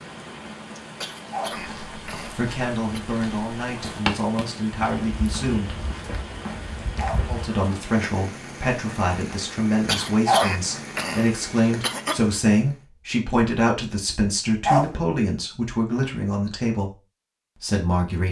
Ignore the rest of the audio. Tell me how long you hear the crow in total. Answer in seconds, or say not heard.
not heard.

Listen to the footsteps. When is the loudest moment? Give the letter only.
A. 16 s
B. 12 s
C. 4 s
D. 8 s
C.